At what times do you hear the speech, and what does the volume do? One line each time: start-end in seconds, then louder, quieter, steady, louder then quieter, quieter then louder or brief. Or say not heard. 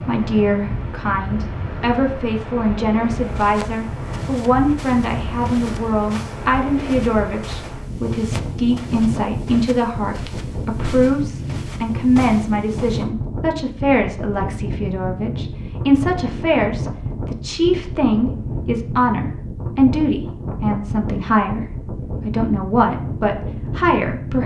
0.0-24.4 steady.